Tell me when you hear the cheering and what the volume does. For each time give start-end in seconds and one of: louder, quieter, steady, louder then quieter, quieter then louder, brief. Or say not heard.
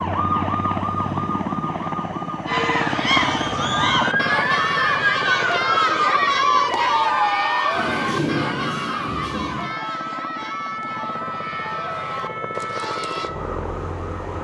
2.5-13.3 quieter.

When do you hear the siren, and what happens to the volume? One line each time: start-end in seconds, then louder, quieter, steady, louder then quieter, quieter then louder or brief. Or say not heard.
0.0-14.3 louder then quieter.